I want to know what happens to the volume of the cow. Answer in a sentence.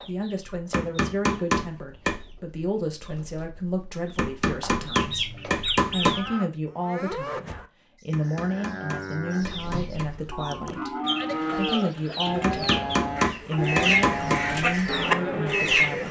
The volume of the cow goes up.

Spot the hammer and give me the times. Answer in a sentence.
You can hear the hammer from 0.7 to 2.2 s, from 4.2 to 6.2 s, from 8.1 to 10.1 s and from 12.4 to 14.4 s.